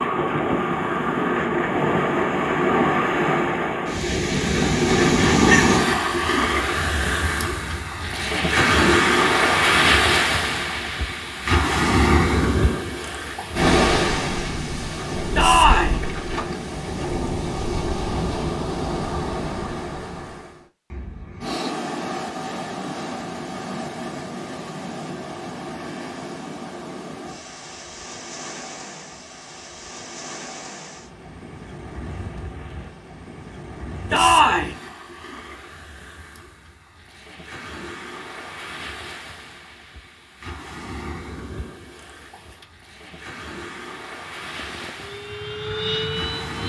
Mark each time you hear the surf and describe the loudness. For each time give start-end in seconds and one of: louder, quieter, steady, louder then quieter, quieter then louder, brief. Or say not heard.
0.0-46.6 quieter.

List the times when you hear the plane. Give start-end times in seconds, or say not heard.
44.5-46.6.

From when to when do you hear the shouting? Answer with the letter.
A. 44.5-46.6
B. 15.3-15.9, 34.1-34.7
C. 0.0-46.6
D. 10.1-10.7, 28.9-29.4
B.